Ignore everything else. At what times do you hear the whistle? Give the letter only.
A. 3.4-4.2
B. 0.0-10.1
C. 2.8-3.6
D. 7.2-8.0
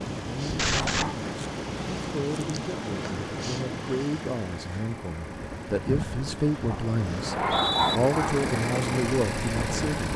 D.